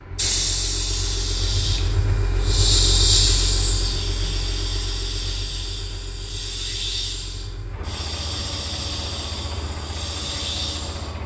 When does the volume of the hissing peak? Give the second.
3 s.